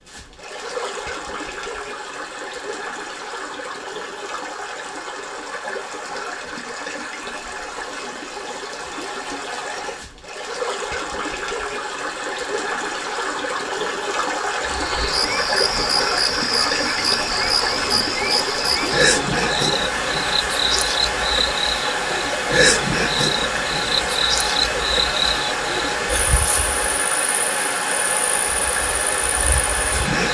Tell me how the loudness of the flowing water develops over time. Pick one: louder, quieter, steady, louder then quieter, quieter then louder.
louder.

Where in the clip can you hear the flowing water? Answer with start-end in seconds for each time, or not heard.
0.0-30.2.